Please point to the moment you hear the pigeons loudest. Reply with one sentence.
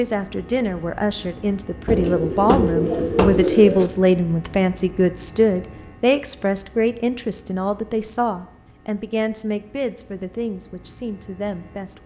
The volume of the pigeons peaks at 3 seconds.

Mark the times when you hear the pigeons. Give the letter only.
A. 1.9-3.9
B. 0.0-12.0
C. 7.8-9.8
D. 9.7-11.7
A.